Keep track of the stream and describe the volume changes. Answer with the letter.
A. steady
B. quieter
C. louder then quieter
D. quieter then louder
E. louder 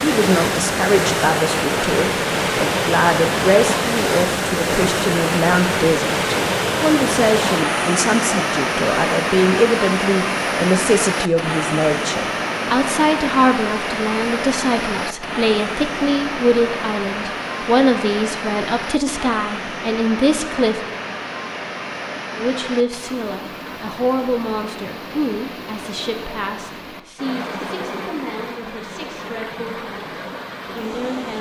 B.